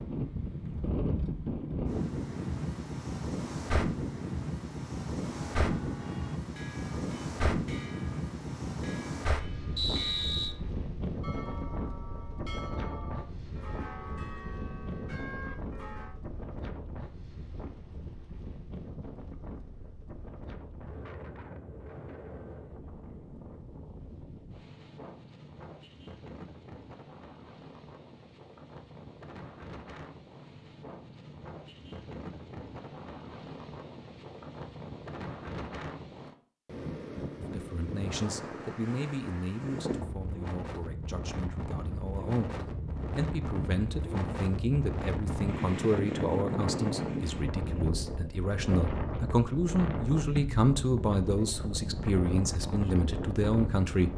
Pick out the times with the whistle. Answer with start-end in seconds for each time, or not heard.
9.8-10.6.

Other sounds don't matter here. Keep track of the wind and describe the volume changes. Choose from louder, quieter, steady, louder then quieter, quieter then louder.
quieter then louder.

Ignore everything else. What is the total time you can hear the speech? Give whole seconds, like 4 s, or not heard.
17 s.